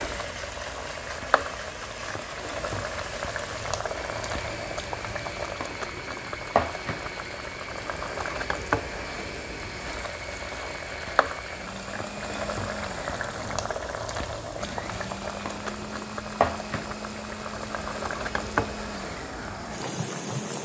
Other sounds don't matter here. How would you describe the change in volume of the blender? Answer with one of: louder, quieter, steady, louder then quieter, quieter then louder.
steady.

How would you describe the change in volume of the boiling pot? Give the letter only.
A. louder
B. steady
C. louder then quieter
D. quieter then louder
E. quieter
B.